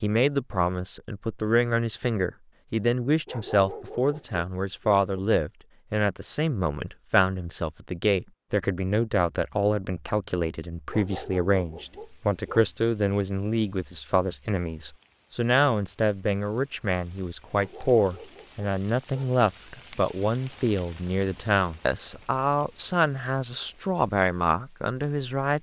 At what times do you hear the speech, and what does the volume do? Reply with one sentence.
You can hear the speech from 0.0 to 25.5 s, at a steady volume.